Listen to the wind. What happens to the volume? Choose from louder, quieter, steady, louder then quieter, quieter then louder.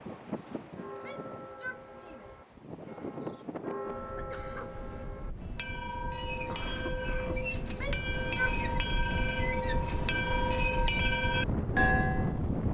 louder.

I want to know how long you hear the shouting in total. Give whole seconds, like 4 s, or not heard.
2 s.